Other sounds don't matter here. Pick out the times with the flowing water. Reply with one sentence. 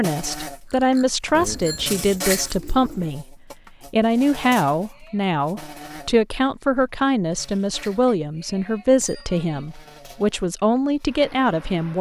The flowing water can't be heard in this clip.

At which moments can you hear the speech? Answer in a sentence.
You can hear the speech from 0.0 to 11.9 s.